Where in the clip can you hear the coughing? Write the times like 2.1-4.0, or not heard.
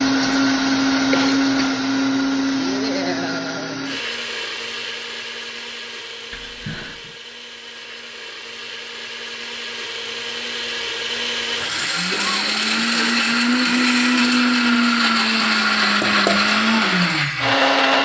1.1-1.7, 6.3-7.2, 12.1-12.6.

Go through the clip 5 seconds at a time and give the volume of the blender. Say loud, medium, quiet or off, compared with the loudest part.
loud, quiet, loud, loud.